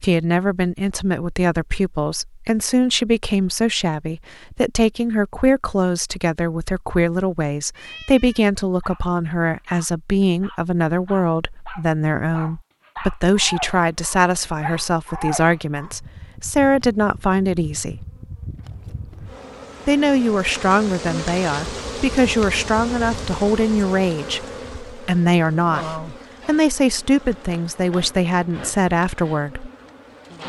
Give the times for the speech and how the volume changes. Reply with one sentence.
The speech can be heard from 0.0 to 18.1 s, at a steady volume; and from 19.9 to 29.7 s, at a steady volume.